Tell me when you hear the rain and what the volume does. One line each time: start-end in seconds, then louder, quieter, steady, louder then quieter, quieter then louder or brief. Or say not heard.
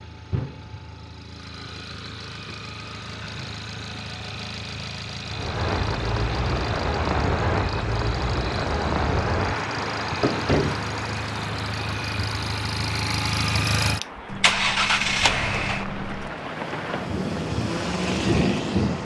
5.2-18.9 quieter then louder.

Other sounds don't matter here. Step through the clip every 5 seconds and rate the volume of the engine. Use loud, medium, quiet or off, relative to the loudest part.
medium, medium, loud, loud.